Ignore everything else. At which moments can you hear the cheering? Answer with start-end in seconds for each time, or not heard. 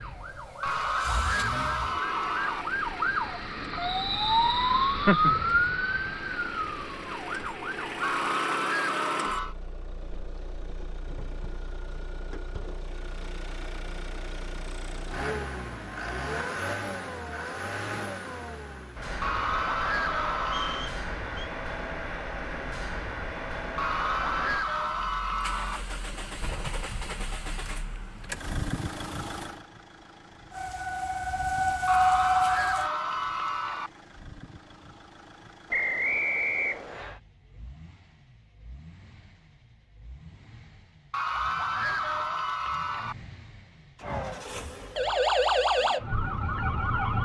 0.6-2.6, 8.0-9.6, 19.2-20.9, 23.8-25.8, 31.9-33.9, 41.1-43.1.